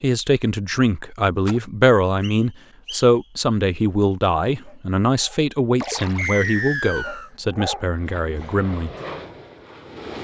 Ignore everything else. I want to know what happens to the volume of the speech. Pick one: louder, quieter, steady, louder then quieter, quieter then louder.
quieter.